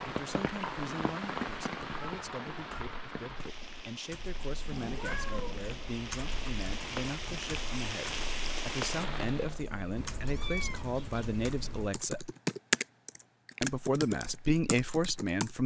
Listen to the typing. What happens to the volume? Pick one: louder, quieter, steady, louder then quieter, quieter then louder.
louder.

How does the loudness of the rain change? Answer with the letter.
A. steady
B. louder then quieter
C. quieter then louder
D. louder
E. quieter
C.